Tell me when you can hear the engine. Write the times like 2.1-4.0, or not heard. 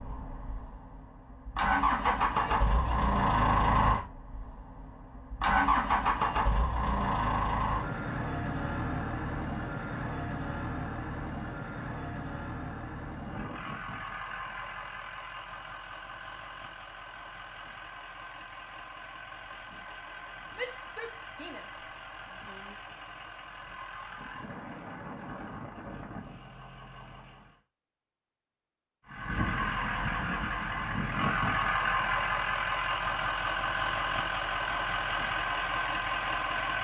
0.0-27.6, 29.1-36.7.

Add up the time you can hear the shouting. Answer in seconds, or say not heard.
3 s.